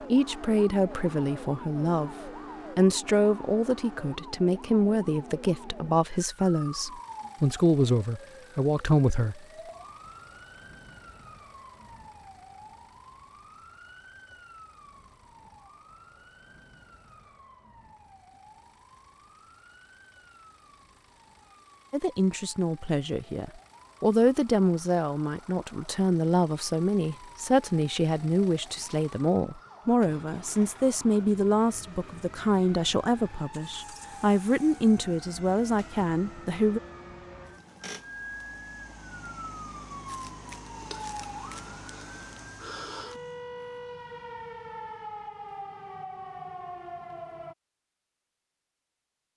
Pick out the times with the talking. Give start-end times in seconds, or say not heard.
0.1-9.4, 21.9-36.8.